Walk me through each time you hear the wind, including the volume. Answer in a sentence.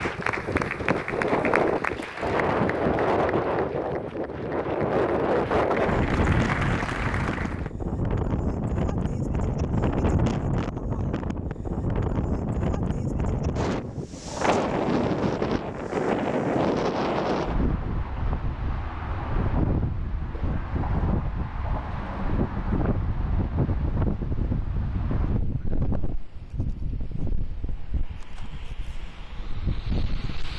You can hear the wind from 0.0 to 30.5 s, getting quieter.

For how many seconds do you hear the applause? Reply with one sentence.
You can hear the applause for 8 seconds altogether.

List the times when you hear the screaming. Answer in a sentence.
You can't hear the screaming here.